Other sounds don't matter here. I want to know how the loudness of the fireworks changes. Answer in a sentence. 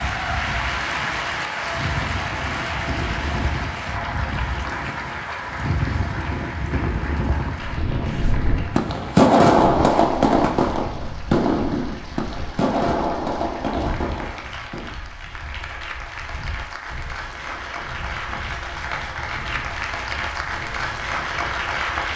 The volume of the fireworks goes down.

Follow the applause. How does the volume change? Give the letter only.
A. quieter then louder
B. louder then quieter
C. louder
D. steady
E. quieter
A.